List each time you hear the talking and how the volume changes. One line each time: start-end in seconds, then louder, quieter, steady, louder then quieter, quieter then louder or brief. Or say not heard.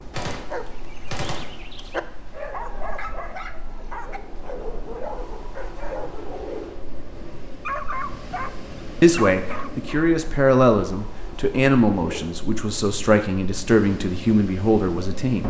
9.0-15.4 steady.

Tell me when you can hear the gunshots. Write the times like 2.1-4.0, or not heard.
0.1-1.6.